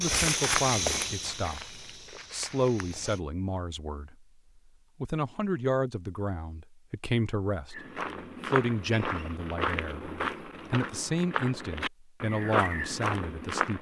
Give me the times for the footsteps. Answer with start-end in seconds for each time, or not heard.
0.0-3.2, 7.7-13.7.